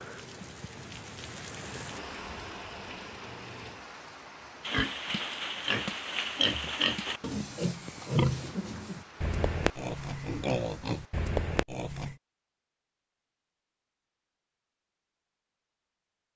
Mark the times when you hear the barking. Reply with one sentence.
The barking can't be heard in this clip.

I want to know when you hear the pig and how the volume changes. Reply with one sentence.
The pig can be heard from 4.6 to 12.2 s, at a steady volume.